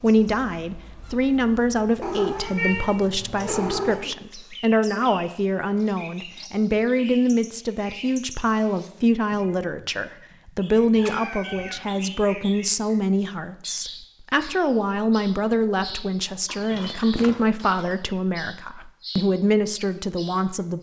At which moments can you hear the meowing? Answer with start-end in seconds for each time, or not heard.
2.0-4.0, 10.9-12.0, 16.4-17.9.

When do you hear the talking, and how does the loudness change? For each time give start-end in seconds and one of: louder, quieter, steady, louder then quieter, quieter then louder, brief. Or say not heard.
0.0-20.7 steady.